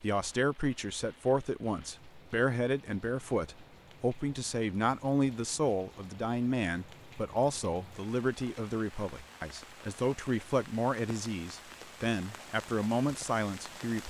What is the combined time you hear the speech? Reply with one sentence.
You can hear the speech for 14 seconds altogether.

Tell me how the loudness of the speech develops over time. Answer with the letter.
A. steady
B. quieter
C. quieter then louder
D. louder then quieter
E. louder
A.